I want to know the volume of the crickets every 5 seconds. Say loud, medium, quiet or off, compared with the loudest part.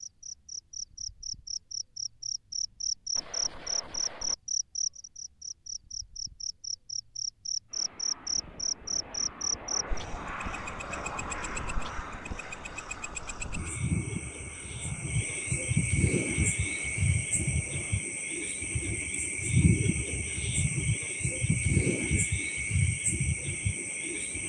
loud, loud, medium, loud, loud.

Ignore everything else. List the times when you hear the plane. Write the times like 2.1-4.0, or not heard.
7.7-18.1.